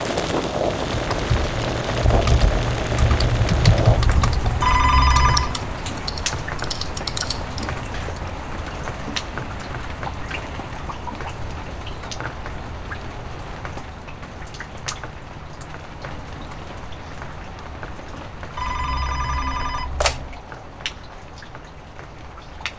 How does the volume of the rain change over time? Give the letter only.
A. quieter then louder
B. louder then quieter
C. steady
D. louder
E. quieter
E.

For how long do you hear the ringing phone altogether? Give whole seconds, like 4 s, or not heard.
3 s.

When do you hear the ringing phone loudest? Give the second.
5 s.